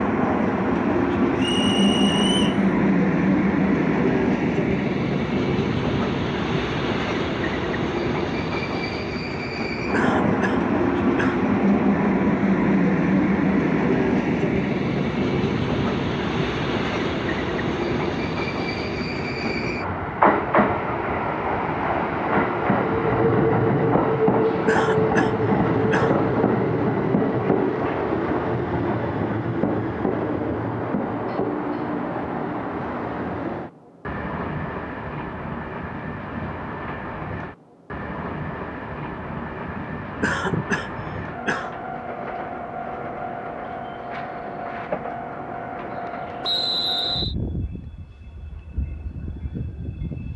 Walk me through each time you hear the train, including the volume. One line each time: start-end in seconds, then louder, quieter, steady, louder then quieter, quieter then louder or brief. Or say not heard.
0.0-50.3 quieter.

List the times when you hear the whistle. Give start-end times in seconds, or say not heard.
1.4-2.6, 46.4-47.4.